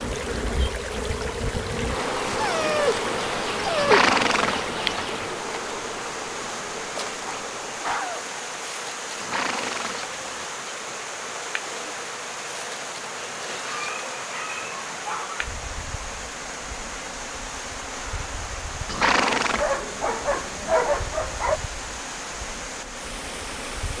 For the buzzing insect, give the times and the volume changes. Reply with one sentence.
The buzzing insect can be heard from 0.0 to 23.9 s, getting quieter.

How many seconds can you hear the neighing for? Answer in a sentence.
You can hear the neighing for 3 seconds altogether.